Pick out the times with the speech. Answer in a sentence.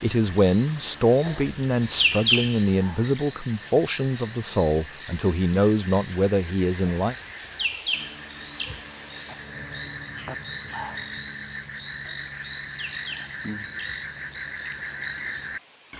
The speech can be heard from 0.0 to 7.2 s.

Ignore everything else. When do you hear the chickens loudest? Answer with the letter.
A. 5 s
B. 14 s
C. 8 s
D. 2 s
D.